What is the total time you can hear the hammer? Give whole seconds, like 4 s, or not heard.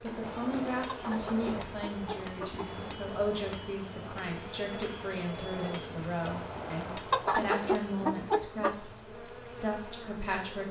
8 s.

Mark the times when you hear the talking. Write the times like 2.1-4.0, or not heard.
0.0-10.6.